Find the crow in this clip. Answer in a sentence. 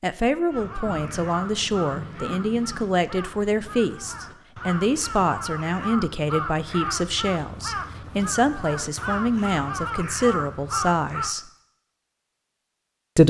You can hear the crow from 0.5 to 11.3 s.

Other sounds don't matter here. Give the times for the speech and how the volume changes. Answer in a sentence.
The speech can be heard from 0.0 to 11.4 s, at a steady volume.